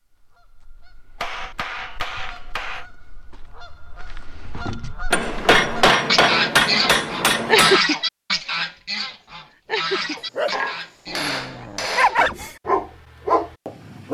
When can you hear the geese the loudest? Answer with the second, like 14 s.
8 s.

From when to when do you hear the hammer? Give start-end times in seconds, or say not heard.
1.2-2.9, 5.1-7.8, 10.2-12.2.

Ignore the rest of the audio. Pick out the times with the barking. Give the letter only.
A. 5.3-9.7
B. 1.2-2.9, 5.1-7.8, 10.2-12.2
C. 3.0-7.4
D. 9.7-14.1
D.